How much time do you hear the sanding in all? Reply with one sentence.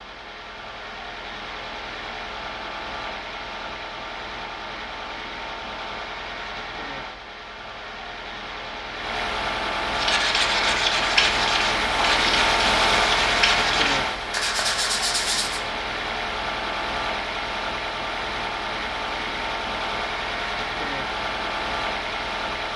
You can hear the sanding for 6 seconds altogether.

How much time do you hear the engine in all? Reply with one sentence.
The engine can be heard for 23 seconds in total.